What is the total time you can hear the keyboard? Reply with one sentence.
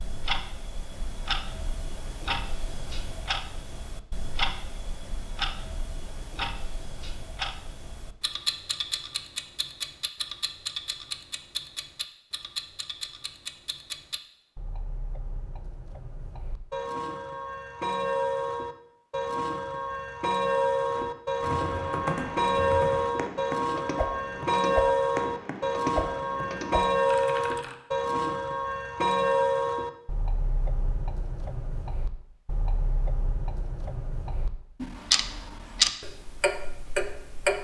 The keyboard can be heard for 7 seconds in total.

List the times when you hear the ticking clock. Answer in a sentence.
You can hear the ticking clock from 0.0 to 37.5 s.